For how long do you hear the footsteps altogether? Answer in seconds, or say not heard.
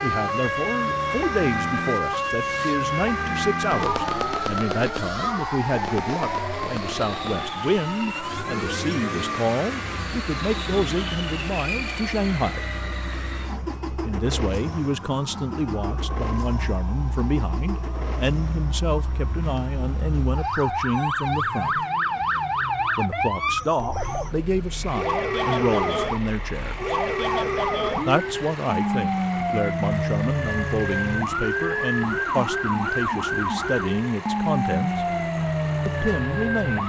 not heard.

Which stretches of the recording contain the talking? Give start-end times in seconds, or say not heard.
0.0-12.7, 14.1-21.9, 22.9-26.9, 28.1-35.0, 35.9-36.8.